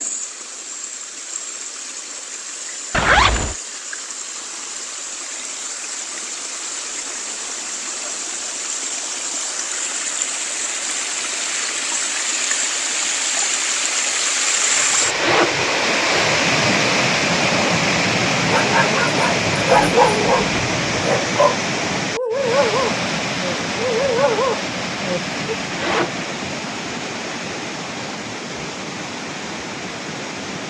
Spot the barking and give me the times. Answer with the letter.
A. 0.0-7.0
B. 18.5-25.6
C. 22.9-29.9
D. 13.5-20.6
B.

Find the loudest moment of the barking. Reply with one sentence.
The volume of the barking peaks at 20 seconds.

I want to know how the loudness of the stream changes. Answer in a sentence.
The volume of the stream goes up, then down.